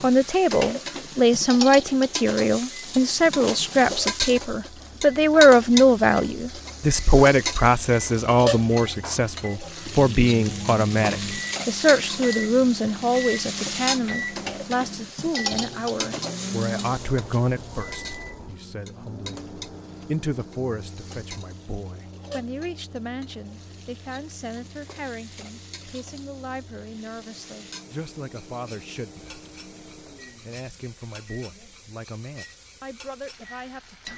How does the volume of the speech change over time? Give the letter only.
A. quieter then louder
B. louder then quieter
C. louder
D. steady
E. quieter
E.